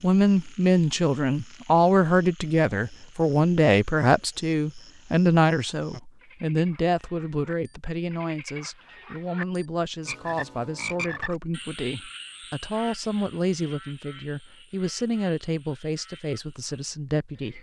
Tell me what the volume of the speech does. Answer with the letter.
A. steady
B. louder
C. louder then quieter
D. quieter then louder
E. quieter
E.